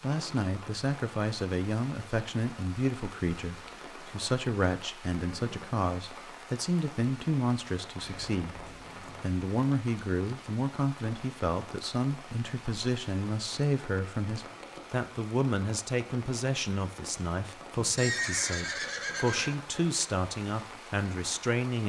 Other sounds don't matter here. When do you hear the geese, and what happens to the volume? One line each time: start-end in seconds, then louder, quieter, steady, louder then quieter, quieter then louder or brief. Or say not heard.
not heard.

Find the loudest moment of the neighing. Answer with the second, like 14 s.
18 s.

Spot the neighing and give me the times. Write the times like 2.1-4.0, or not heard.
5.3-5.8, 8.0-9.2, 17.8-19.6.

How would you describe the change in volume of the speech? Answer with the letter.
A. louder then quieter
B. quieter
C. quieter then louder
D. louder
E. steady
E.